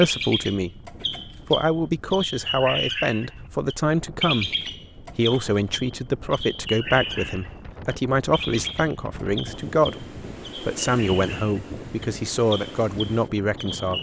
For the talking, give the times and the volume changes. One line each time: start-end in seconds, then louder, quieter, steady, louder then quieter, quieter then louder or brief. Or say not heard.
0.0-13.9 steady.